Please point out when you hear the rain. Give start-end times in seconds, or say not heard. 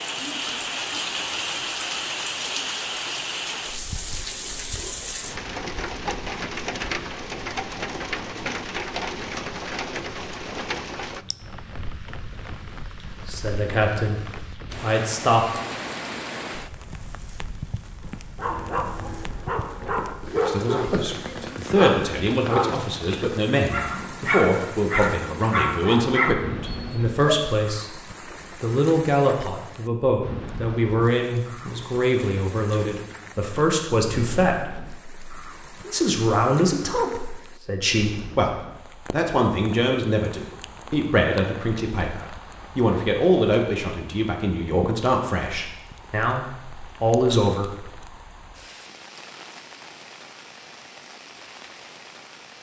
0.0-52.5.